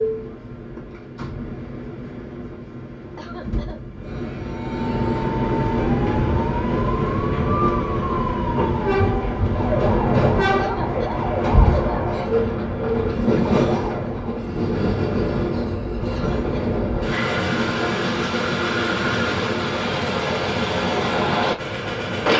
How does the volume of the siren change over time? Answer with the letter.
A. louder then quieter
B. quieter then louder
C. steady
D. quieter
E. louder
C.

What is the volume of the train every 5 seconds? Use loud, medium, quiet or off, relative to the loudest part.
medium, loud, loud, loud, loud.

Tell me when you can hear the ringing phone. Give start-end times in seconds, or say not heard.
not heard.